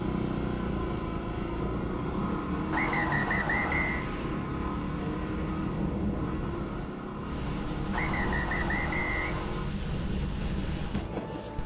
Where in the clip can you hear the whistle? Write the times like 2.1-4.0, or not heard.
2.7-4.0, 7.9-9.6.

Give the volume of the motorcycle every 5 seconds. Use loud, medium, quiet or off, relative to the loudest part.
loud, loud, off.